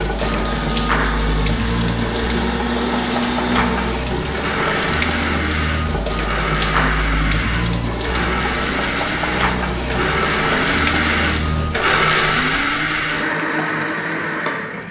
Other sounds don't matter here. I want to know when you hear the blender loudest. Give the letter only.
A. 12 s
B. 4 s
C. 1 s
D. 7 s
A.